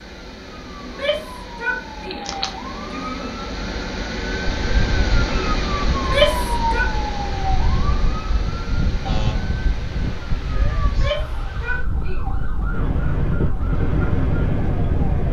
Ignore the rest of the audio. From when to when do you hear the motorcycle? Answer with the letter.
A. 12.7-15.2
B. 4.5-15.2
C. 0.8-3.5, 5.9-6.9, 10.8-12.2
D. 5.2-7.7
A.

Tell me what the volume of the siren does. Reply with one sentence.
The volume of the siren goes up, then down.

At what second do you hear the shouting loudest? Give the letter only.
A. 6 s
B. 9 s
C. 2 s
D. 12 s
A.